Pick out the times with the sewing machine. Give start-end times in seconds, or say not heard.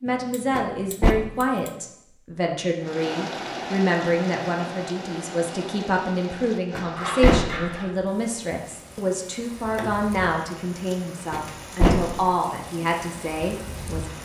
not heard.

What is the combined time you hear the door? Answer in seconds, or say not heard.
2 s.